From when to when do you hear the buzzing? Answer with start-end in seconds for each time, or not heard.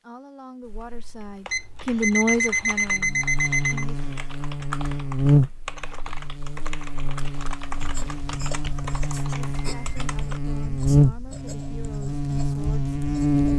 2.8-13.5.